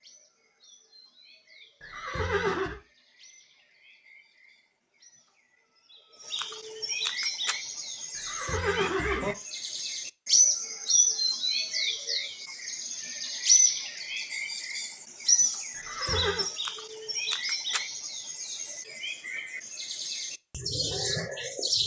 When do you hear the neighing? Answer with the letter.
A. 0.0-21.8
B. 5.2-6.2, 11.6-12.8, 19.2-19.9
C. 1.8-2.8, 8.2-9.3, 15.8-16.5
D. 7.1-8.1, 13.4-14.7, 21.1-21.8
C.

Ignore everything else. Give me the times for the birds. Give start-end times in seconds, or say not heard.
0.0-21.8.